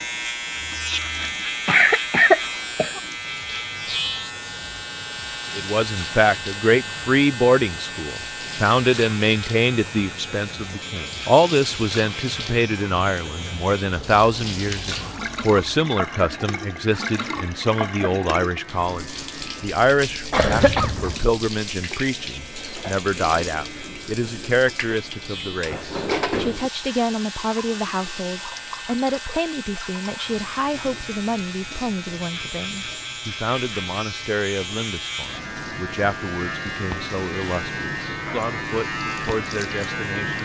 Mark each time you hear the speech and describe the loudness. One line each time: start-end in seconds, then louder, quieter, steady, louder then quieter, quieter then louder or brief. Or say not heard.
5.5-40.4 quieter.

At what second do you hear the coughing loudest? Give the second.
2 s.